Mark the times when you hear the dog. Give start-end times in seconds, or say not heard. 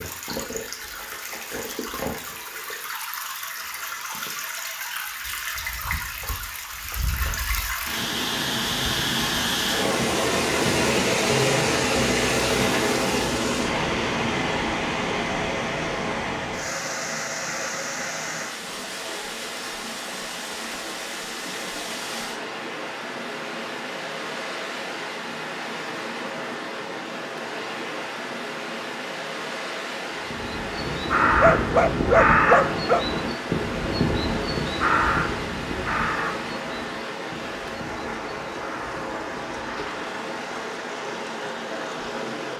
31.4-33.0.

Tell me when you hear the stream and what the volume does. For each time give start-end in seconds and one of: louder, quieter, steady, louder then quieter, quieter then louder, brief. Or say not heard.
0.0-42.5 louder then quieter.